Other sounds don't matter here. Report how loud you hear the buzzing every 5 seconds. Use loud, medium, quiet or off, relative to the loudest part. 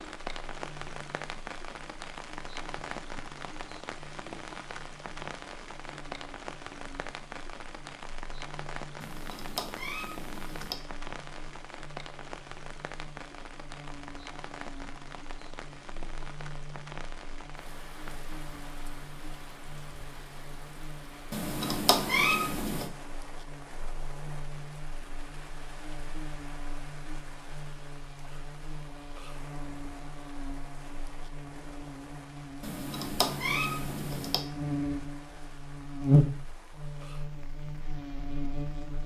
quiet, quiet, quiet, quiet, quiet, quiet, medium, loud.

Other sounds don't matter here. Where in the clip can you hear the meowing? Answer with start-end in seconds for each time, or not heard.
9.0-10.8, 21.3-22.9, 32.6-34.5.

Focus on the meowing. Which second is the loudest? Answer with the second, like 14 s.
22 s.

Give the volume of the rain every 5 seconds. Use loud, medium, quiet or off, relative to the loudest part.
loud, loud, loud, medium, medium, medium, medium, quiet.